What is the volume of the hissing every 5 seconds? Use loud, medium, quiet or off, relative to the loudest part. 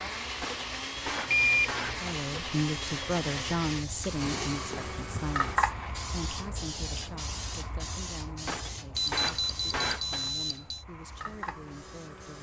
medium, loud, medium.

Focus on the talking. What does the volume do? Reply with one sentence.
The loudness of the talking goes down.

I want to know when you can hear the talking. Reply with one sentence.
You can hear the talking from 1.9 to 12.3 s.